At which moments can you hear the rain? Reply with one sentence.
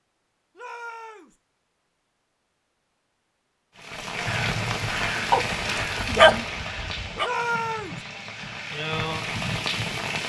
The rain can be heard from 3.8 to 10.2 s.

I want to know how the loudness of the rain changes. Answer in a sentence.
The volume of the rain goes down, then up.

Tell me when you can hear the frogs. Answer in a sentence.
You can't hear the frogs here.